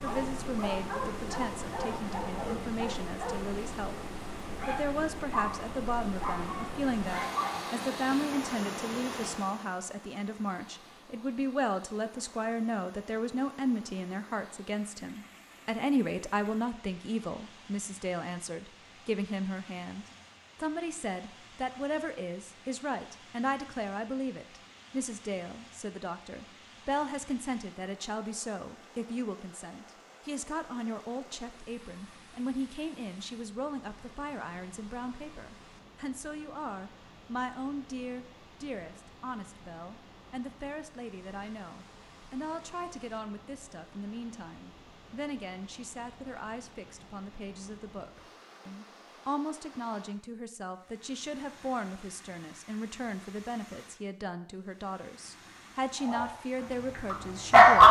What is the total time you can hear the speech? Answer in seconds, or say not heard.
57 s.